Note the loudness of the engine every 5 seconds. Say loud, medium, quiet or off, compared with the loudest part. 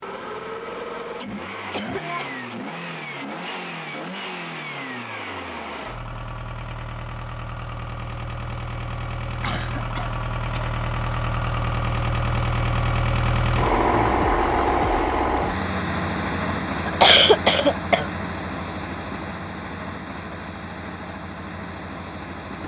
medium, medium, loud, loud, medium.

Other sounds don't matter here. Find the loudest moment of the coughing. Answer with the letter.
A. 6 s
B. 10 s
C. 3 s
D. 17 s
D.